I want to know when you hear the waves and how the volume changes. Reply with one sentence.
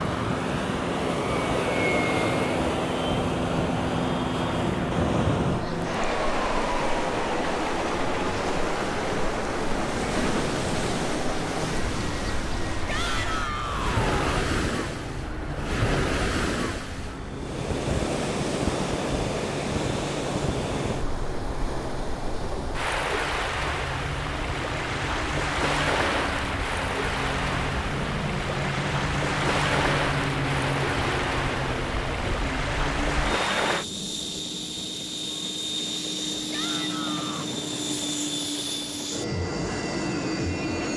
You can hear the waves from 0.0 to 33.9 s, at a steady volume.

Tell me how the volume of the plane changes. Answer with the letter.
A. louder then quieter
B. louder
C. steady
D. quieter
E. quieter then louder
E.